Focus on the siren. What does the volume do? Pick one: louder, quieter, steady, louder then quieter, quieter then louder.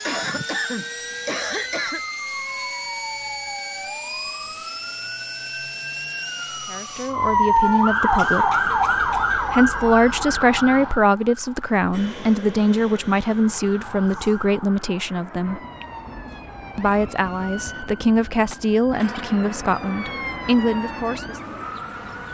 louder then quieter.